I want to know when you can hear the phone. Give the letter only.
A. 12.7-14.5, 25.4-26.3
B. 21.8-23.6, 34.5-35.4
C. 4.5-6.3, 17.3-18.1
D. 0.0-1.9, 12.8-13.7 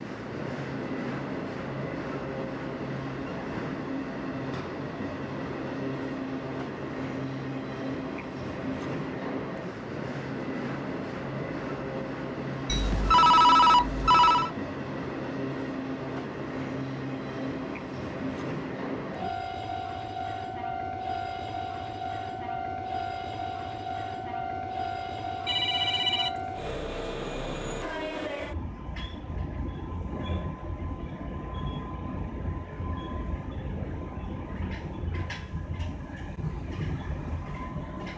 A.